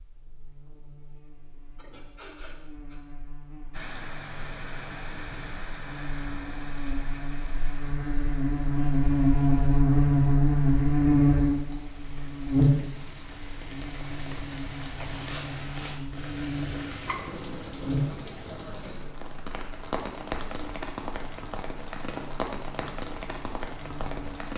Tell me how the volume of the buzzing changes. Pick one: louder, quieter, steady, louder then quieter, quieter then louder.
louder then quieter.